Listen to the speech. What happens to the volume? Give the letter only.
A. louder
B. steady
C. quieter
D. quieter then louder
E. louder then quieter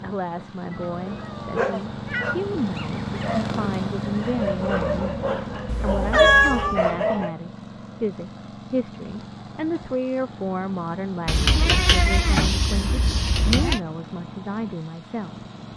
B.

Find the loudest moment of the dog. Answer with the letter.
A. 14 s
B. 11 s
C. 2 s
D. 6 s
D.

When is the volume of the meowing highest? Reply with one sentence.
The volume of the meowing peaks at 6 seconds.